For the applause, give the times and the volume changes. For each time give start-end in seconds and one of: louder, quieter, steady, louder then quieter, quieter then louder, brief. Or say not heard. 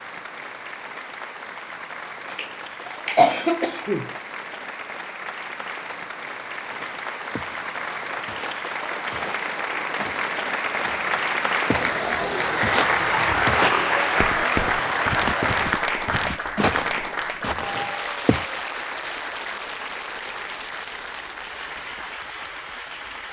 0.0-23.2 louder then quieter.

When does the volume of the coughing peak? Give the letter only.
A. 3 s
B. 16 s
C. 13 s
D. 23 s
A.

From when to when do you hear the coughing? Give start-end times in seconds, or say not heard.
2.3-4.1, 15.2-15.8.